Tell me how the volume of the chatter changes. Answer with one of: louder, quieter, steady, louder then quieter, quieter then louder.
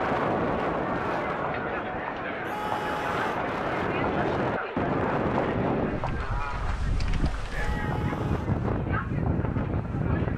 quieter.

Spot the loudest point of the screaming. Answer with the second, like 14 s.
3 s.